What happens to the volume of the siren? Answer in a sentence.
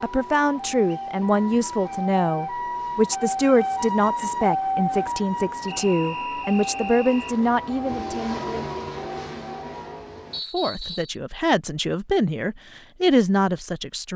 The volume of the siren goes up, then down.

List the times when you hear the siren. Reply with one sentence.
The siren can be heard from 0.0 to 9.9 s.